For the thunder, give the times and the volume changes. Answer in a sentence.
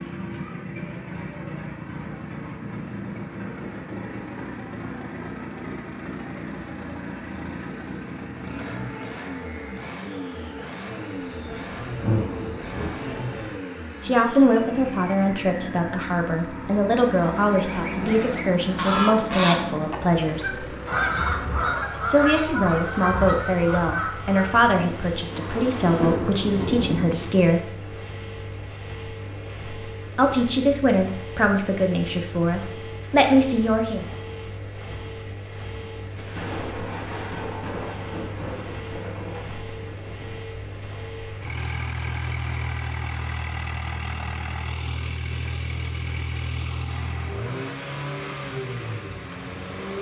The thunder can be heard briefly from 11.3 to 13.6 s; briefly from 24.8 to 27.4 s; and from 36.1 to 40.4 s, getting quieter.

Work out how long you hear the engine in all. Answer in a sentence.
You can hear the engine for 50 seconds altogether.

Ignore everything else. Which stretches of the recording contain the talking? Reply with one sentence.
The talking can be heard from 14.0 to 20.6 s, from 22.1 to 27.6 s and from 30.1 to 34.0 s.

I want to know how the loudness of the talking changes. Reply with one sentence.
The loudness of the talking stays about the same.